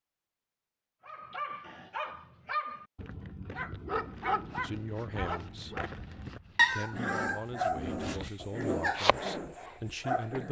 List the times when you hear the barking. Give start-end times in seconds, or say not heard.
1.1-10.4.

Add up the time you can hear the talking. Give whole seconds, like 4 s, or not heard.
5 s.